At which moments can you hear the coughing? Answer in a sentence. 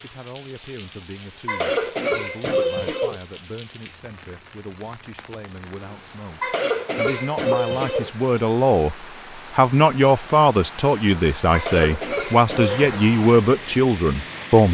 You can hear the coughing from 1.4 to 3.2 s, from 6.4 to 8.1 s and from 11.5 to 13.1 s.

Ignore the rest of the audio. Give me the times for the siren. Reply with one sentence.
You can't hear the siren here.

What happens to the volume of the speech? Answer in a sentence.
The loudness of the speech goes up.